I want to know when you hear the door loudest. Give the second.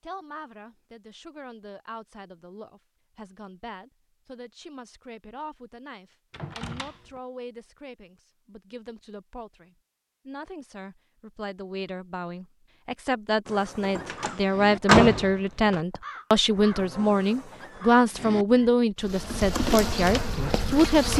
15 s.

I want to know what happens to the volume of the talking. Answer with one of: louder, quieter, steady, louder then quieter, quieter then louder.
louder.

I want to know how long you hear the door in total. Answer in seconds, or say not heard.
3 s.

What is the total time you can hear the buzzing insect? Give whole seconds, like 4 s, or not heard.
2 s.